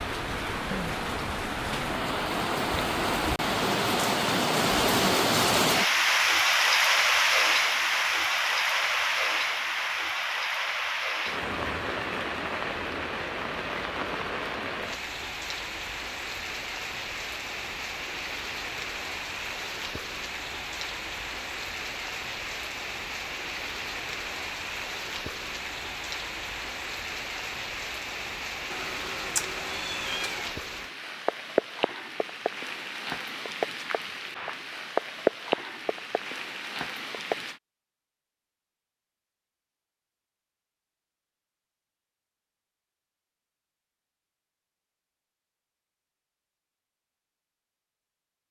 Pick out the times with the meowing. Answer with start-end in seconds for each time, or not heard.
28.7-30.6.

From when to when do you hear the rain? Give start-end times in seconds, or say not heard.
0.0-37.6.